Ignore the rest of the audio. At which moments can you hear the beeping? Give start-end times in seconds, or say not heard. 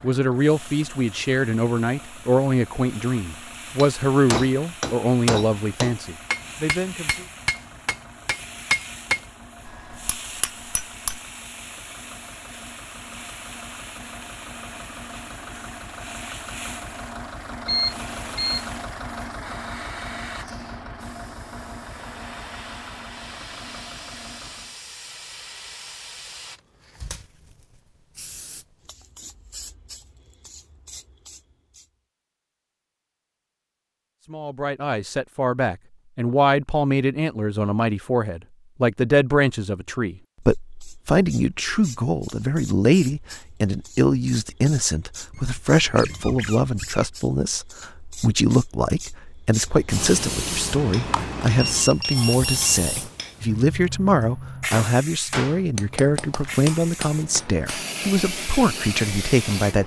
17.6-18.6, 51.5-52.9.